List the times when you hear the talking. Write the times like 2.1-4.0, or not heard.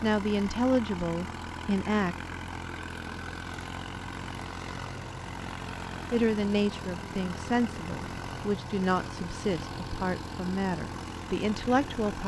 0.0-2.1, 6.1-12.2.